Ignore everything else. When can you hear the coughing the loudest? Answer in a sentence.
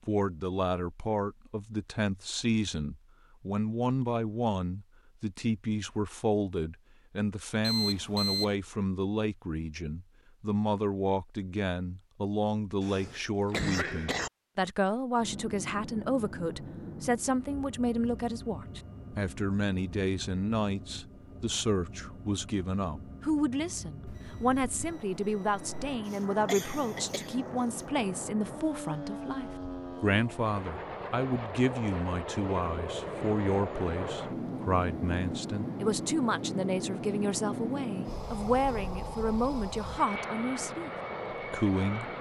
The loudest moment of the coughing is at 14 seconds.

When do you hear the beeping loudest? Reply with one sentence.
The loudest moment of the beeping is at 8 seconds.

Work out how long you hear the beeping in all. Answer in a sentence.
You can hear the beeping for 3 seconds altogether.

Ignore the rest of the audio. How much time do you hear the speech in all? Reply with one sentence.
You can hear the speech for 42 seconds altogether.